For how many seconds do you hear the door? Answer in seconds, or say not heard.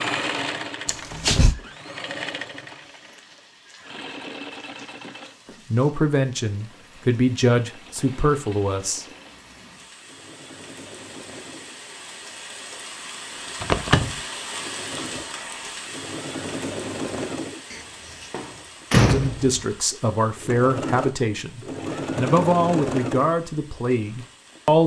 3 s.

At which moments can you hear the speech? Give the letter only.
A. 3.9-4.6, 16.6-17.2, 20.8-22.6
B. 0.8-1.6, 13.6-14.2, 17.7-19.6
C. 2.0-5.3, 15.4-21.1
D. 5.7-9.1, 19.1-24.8
D.